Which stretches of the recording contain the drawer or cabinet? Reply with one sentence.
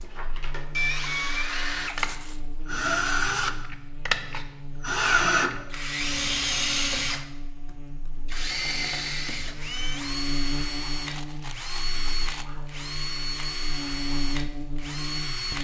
The drawer or cabinet can't be heard in this clip.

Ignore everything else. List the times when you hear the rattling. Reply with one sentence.
You can hear the rattling from 1.9 to 2.4 s and from 11.1 to 12.4 s.